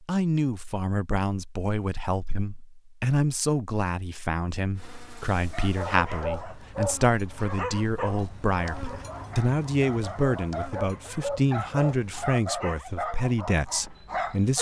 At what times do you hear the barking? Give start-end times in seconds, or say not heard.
5.5-14.5.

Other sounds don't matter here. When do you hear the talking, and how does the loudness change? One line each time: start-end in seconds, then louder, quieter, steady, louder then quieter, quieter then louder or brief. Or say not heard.
0.0-14.5 steady.